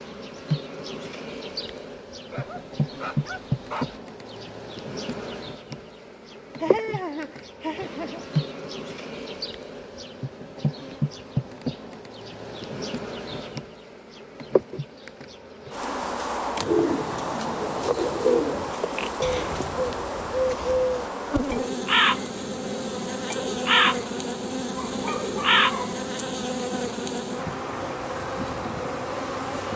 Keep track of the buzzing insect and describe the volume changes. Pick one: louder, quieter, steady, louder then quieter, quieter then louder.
steady.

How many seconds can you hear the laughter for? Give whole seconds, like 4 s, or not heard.
2 s.